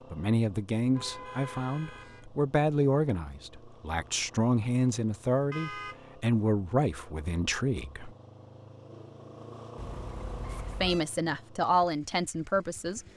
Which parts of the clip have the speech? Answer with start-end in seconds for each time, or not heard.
0.1-8.2, 10.6-13.1.